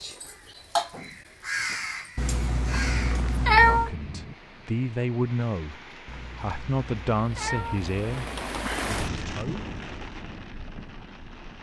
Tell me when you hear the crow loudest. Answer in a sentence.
The volume of the crow peaks at 1 second.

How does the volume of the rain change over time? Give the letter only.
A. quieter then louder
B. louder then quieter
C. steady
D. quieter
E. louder
B.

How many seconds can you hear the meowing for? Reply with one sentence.
You can hear the meowing for 4 seconds altogether.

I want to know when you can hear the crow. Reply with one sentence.
You can hear the crow from 0.0 to 3.4 s.